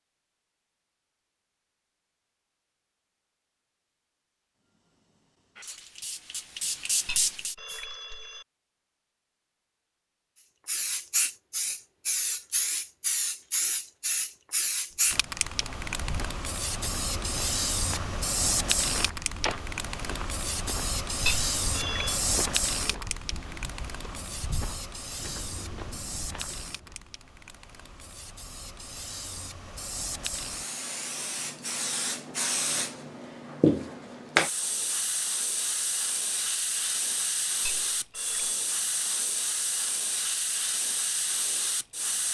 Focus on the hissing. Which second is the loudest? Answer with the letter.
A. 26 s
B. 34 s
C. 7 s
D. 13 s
B.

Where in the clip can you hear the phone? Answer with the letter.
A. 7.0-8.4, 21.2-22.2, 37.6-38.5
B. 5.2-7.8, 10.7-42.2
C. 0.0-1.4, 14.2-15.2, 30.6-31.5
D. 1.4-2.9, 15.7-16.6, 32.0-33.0
A.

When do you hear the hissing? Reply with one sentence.
You can hear the hissing from 5.2 to 7.8 s and from 10.7 to 42.2 s.